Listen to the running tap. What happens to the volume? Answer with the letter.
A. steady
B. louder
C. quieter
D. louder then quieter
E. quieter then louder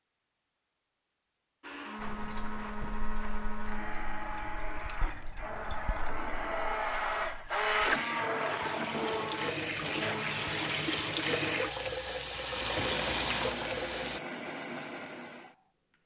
B.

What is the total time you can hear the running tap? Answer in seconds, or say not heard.
12 s.